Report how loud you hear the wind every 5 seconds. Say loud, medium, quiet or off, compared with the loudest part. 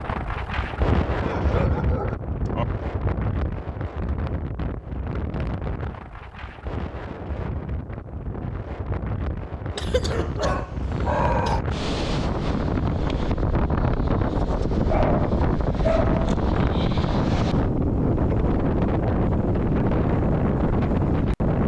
medium, medium, loud, loud, loud.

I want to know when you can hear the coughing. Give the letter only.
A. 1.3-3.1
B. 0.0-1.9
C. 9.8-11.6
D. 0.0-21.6
C.